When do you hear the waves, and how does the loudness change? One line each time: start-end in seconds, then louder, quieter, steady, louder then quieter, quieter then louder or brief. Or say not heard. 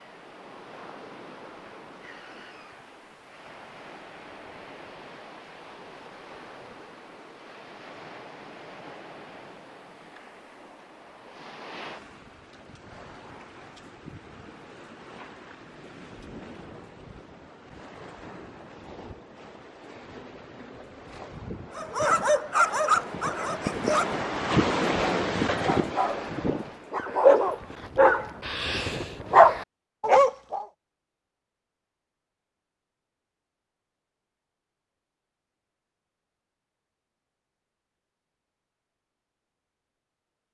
0.0-27.1 louder.